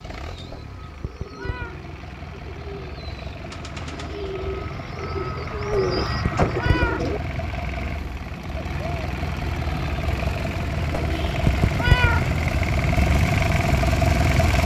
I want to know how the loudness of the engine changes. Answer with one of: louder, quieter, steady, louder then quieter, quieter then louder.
louder.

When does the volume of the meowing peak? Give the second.
12 s.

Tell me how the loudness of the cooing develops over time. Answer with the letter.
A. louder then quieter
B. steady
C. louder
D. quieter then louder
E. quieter
C.